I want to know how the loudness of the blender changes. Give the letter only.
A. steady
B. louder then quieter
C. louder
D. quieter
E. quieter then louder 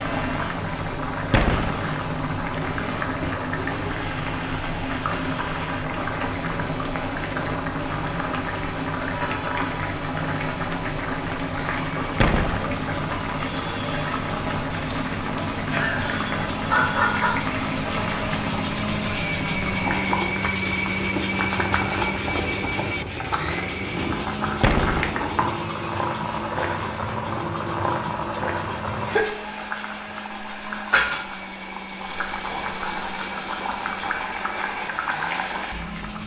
B.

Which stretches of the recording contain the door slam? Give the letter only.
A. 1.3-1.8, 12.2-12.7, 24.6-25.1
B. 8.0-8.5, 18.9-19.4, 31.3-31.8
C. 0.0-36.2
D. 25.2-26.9
A.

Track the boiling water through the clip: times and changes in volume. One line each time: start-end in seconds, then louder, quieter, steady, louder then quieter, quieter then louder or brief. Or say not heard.
0.0-36.2 steady.